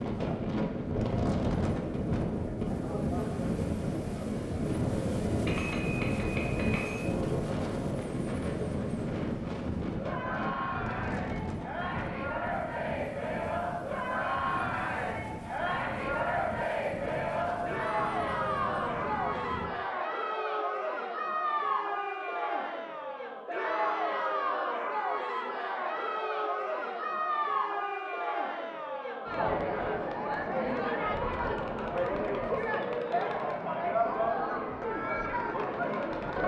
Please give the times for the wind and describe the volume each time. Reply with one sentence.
The wind can be heard from 0.0 to 19.7 s, getting quieter.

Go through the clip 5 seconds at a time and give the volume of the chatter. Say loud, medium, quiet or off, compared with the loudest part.
medium, medium, loud, loud, loud, loud, loud, loud.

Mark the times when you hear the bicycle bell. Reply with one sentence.
You can hear the bicycle bell from 5.5 to 7.0 s.